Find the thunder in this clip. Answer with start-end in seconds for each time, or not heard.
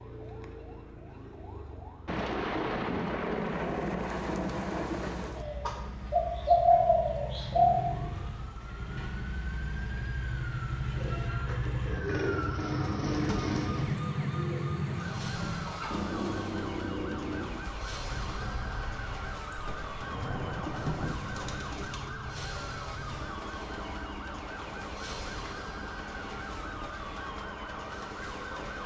2.0-5.5, 19.6-21.2.